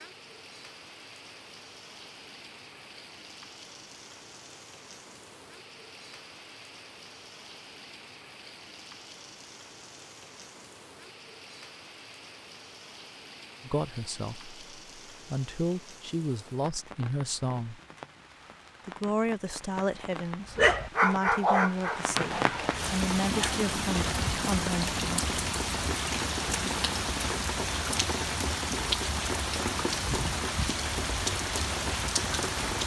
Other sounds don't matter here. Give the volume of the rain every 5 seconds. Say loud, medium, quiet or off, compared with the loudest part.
quiet, quiet, quiet, quiet, loud, loud, loud.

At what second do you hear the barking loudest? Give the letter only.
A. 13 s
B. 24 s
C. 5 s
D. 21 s
D.